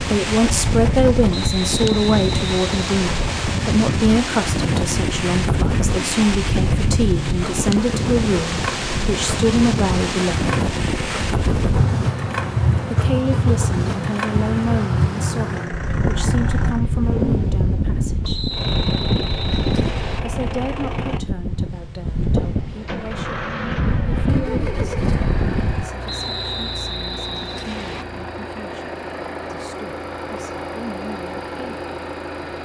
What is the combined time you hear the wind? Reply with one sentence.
The wind can be heard for 26 seconds in total.